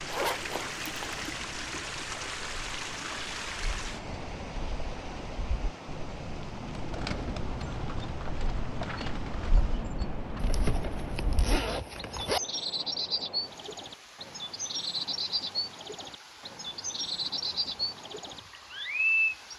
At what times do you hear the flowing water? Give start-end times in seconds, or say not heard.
0.0-19.5.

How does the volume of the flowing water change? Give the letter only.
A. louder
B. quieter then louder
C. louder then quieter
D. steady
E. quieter
E.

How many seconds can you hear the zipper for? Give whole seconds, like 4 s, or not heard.
3 s.